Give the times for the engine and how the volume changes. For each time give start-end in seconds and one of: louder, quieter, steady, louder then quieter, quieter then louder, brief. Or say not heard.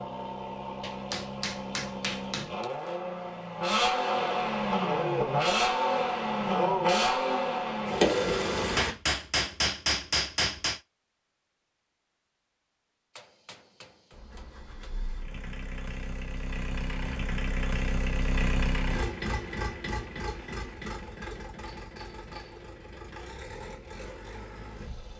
0.0-8.9 louder
14.1-25.1 louder then quieter.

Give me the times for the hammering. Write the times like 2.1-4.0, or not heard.
0.8-2.6, 8.8-10.8, 13.2-14.9, 21.9-22.6.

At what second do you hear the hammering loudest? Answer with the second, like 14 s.
10 s.